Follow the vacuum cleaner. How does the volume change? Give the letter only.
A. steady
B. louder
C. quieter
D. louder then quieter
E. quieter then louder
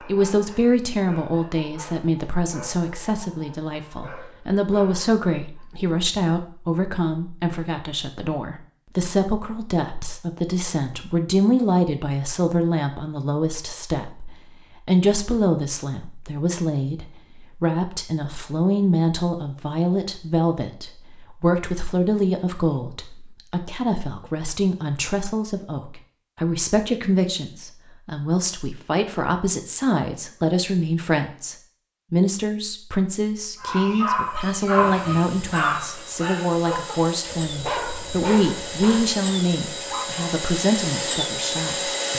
B.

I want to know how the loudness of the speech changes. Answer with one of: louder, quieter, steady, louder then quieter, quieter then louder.
steady.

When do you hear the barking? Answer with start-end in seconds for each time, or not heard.
0.0-5.7, 33.5-40.2.